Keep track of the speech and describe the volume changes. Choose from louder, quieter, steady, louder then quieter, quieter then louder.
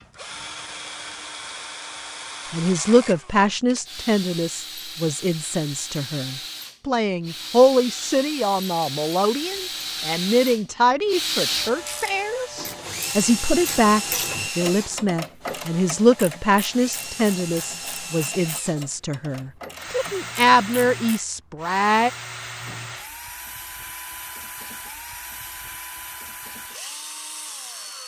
steady.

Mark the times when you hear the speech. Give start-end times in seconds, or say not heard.
2.5-22.1.